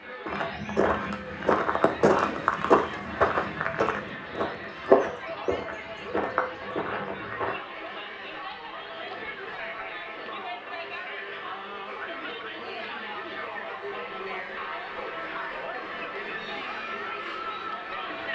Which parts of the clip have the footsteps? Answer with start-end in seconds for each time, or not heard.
0.2-7.5.